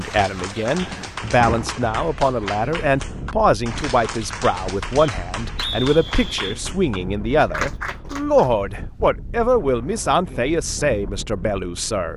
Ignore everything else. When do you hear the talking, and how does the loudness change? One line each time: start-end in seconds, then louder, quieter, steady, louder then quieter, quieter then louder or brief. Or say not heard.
0.0-12.1 steady.